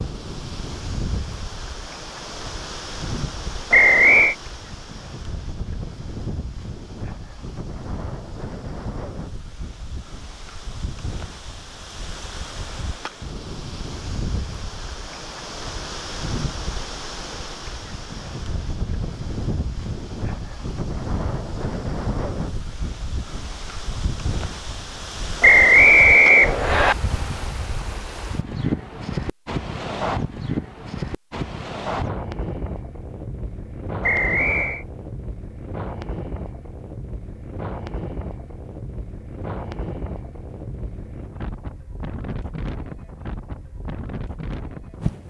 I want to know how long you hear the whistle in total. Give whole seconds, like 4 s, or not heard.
3 s.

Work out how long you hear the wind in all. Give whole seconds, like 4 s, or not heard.
45 s.